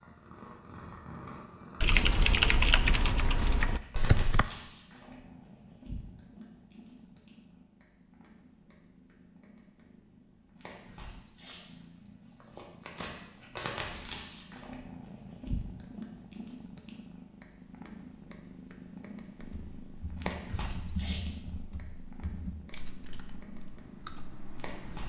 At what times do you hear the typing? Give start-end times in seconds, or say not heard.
1.8-4.5, 19.4-25.0.